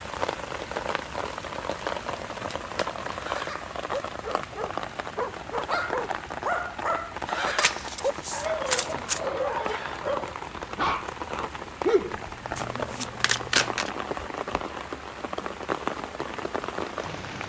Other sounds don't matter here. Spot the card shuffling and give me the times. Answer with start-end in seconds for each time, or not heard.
1.8-3.4, 7.5-9.2, 12.6-13.9.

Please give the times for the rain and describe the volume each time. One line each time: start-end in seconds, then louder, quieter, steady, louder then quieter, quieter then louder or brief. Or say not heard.
0.0-17.4 steady.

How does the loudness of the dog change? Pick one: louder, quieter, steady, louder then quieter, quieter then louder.
louder.